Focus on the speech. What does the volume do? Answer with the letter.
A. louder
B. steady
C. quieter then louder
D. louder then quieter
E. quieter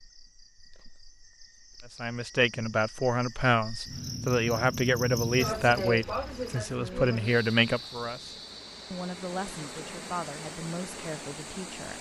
E.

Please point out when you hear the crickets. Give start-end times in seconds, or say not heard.
0.0-11.9.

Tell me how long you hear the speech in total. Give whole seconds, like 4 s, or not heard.
10 s.